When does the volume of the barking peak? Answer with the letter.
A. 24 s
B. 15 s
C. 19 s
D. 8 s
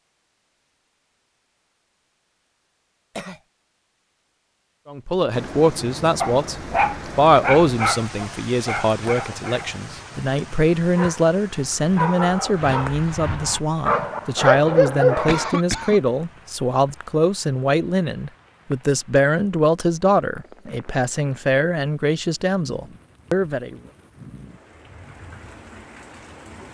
B.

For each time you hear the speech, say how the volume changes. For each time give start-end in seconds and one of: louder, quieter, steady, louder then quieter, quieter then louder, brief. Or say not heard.
4.8-23.8 steady.